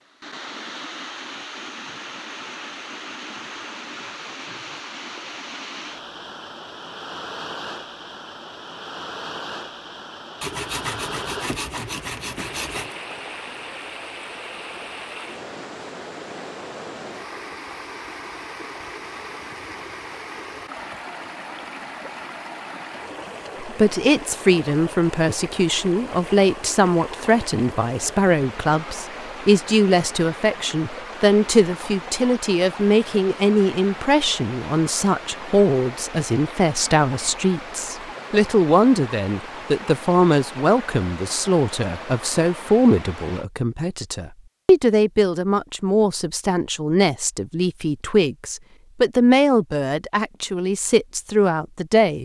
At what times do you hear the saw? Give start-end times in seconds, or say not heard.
10.4-12.9.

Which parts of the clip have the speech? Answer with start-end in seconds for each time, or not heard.
23.6-52.1.